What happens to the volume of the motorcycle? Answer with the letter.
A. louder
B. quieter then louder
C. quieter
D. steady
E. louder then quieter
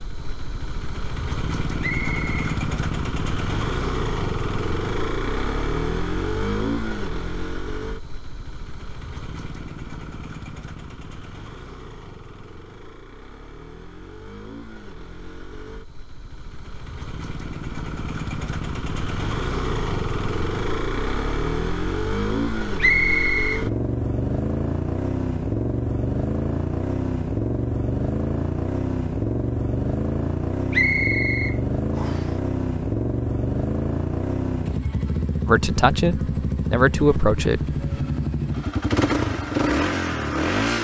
B.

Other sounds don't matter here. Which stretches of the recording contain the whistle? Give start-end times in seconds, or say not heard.
1.8-2.5, 22.8-23.6, 30.7-32.3.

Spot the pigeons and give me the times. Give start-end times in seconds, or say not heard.
not heard.